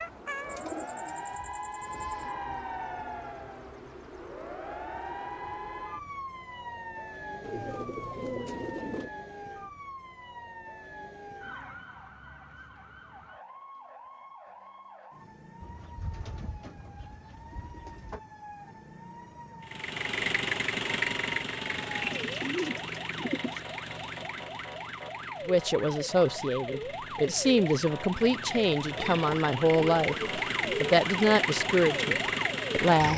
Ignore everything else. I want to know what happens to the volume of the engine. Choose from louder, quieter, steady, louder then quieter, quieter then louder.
quieter then louder.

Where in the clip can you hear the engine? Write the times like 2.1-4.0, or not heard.
19.6-33.1.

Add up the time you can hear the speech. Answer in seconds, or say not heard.
8 s.